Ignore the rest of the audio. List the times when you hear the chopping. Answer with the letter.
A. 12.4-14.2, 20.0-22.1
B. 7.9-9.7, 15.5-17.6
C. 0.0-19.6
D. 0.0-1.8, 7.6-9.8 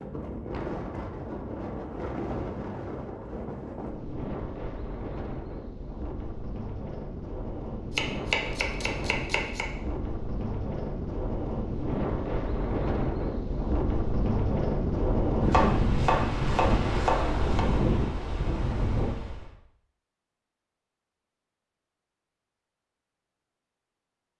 B.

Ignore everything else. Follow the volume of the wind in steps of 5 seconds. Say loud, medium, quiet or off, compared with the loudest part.
medium, medium, loud, loud, off.